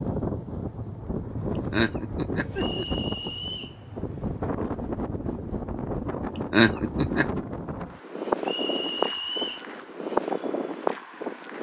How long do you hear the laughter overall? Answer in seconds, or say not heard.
2 s.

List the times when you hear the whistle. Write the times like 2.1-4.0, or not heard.
2.5-3.8, 8.4-9.7.